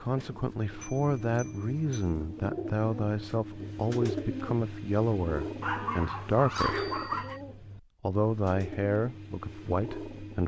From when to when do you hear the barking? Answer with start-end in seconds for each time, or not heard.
5.6-7.4.